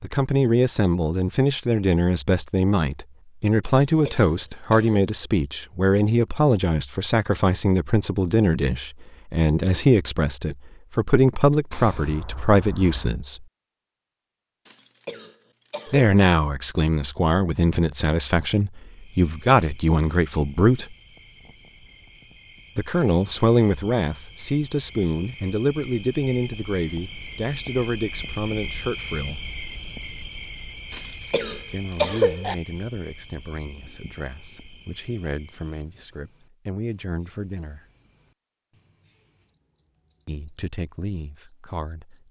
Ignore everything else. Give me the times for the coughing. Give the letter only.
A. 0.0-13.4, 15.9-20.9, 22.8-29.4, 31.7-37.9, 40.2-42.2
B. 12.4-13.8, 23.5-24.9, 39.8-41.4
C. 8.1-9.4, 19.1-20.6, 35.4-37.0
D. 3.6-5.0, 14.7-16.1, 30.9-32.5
D.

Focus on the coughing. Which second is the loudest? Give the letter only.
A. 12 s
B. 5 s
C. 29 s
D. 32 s
D.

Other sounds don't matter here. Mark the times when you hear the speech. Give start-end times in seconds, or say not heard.
0.0-13.4, 15.9-20.9, 22.8-29.4, 31.7-37.9, 40.2-42.2.